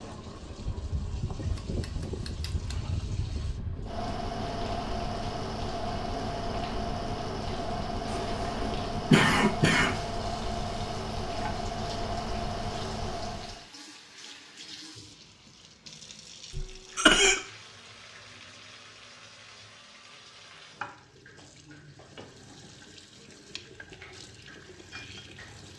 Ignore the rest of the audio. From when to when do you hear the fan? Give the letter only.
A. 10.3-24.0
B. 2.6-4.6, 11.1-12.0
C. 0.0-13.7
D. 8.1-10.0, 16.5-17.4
C.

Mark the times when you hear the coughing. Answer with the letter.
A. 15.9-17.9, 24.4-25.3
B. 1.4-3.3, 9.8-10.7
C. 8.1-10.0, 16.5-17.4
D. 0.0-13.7
C.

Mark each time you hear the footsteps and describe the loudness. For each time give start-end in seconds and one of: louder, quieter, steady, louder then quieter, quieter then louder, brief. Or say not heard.
not heard.